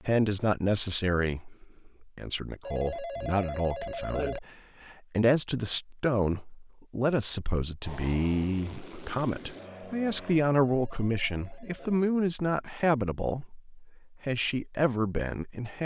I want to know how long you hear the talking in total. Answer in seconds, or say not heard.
16 s.